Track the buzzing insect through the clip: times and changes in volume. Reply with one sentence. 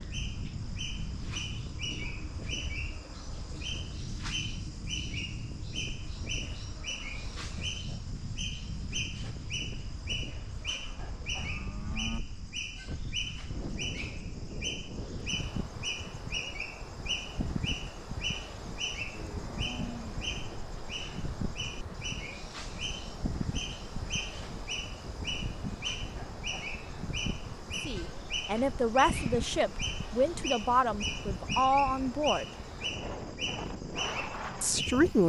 You can't hear the buzzing insect here.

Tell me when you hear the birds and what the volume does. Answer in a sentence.
The birds can be heard from 0.0 to 35.2 s, at a steady volume.